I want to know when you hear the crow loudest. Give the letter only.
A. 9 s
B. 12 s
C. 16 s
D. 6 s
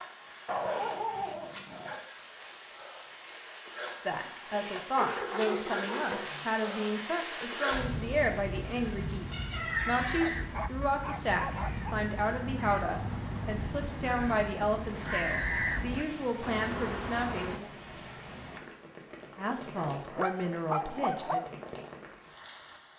C.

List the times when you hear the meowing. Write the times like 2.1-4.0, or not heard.
9.3-10.3.